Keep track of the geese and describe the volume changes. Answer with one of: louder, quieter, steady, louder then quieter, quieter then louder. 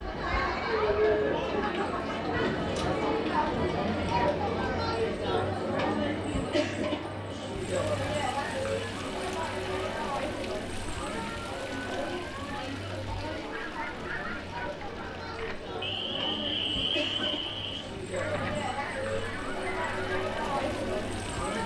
louder then quieter.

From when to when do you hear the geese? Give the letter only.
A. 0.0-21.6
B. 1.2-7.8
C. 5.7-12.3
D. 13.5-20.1
D.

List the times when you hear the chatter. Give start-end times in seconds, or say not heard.
0.0-21.6.